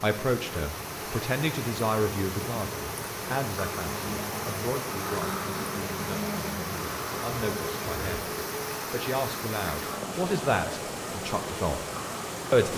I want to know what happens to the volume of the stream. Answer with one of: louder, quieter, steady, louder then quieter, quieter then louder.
steady.